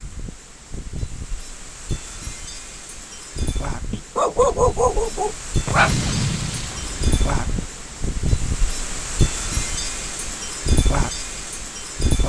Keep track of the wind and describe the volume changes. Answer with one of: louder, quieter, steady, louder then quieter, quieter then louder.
louder.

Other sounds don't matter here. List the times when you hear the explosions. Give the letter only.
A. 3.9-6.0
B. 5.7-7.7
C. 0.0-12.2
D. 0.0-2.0
B.